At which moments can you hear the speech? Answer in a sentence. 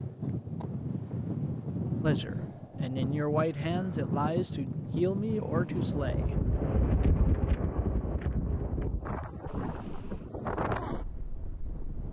You can hear the speech from 2.0 to 6.3 s.